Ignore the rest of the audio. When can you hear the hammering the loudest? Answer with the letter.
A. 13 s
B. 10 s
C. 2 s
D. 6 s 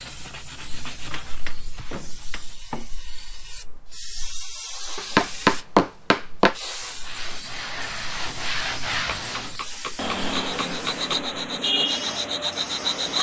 D.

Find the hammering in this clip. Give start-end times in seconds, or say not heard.
1.1-2.5, 5.0-6.5, 9.2-11.2.